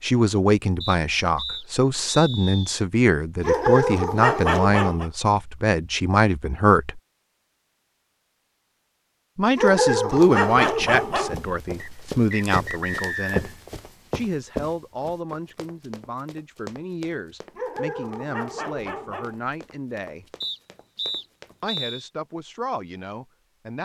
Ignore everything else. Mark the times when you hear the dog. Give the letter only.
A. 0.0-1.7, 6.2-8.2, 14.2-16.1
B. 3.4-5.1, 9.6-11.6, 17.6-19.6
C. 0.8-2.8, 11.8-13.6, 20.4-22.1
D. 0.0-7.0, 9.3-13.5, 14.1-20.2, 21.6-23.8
B.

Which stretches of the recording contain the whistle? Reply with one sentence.
You can hear the whistle from 0.8 to 2.8 s, from 11.8 to 13.6 s and from 20.4 to 22.1 s.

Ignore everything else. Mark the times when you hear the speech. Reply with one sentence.
The speech can be heard from 0.0 to 7.0 s, from 9.3 to 13.5 s, from 14.1 to 20.2 s and from 21.6 to 23.8 s.